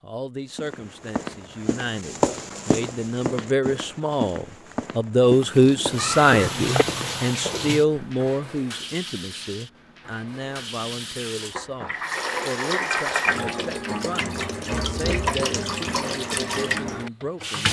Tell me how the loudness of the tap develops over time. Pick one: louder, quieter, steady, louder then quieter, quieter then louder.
quieter then louder.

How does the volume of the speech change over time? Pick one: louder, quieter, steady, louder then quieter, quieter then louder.
louder then quieter.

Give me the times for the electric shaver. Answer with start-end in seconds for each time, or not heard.
not heard.